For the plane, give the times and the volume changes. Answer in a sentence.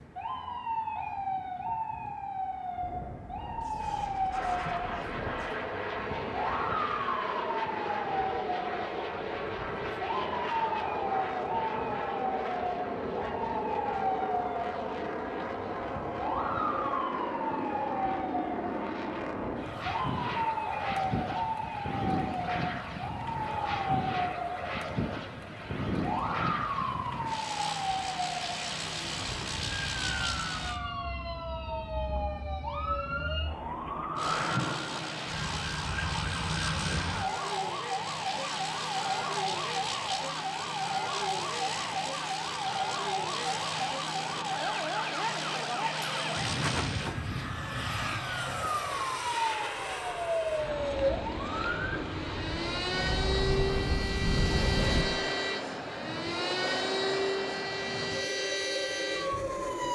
The plane can be heard from 4.3 to 30.8 s, at a steady volume; and from 34.1 to 59.9 s, at a steady volume.